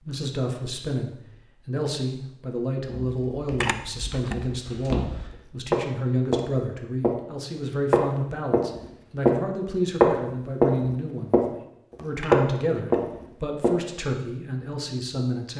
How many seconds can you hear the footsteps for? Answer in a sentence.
You can hear the footsteps for 9 seconds altogether.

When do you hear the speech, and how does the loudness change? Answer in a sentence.
The speech can be heard from 0.0 to 15.5 s, at a steady volume.